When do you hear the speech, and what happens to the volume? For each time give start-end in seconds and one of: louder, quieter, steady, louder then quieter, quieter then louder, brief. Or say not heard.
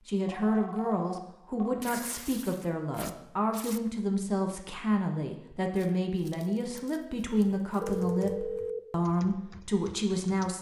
0.1-10.5 steady.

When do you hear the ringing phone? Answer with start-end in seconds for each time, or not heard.
0.4-1.9, 7.8-8.8.